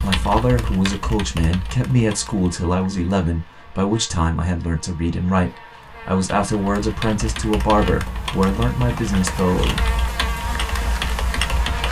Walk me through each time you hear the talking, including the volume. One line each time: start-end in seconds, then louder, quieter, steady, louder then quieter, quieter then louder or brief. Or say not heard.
0.0-9.9 steady.